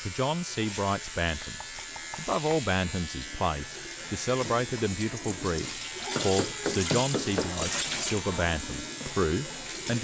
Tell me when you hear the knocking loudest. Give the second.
7 s.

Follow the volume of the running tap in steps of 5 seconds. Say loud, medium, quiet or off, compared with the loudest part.
medium, loud.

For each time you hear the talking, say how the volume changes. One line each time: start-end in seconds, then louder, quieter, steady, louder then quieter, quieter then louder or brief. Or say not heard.
0.0-9.9 steady.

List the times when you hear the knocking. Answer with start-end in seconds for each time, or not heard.
1.4-2.4, 6.2-7.7.